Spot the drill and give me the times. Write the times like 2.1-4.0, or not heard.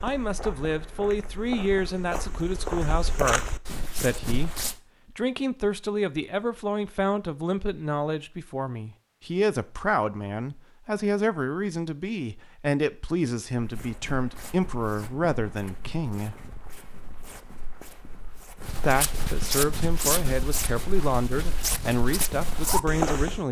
not heard.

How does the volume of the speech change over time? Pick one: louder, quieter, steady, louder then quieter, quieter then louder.
steady.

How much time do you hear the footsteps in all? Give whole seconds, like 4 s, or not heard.
15 s.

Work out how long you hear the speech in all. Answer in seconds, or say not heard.
21 s.